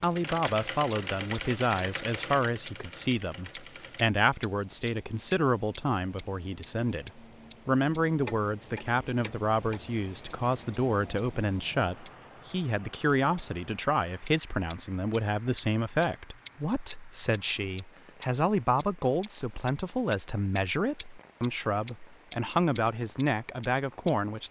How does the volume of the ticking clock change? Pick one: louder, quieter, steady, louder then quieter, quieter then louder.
quieter then louder.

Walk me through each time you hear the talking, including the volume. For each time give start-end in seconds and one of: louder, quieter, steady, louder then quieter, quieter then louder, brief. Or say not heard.
0.0-24.4 steady.